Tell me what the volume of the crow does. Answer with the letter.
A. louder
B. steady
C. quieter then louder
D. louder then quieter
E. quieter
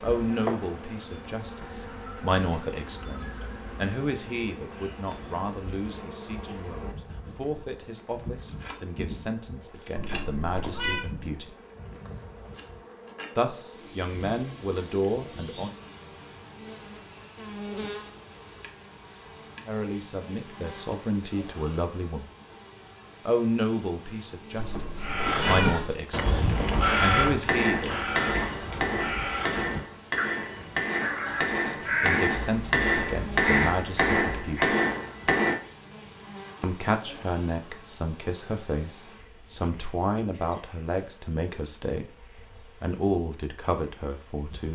E.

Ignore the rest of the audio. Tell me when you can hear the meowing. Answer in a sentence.
You can hear the meowing from 9.9 to 11.1 s and from 24.6 to 25.9 s.